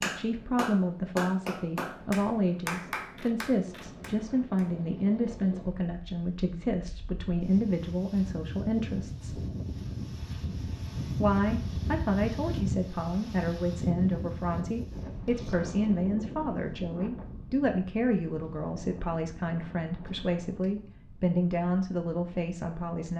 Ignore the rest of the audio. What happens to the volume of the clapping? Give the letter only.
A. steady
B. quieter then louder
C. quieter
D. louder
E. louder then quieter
C.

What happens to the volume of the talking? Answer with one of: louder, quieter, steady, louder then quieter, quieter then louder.
steady.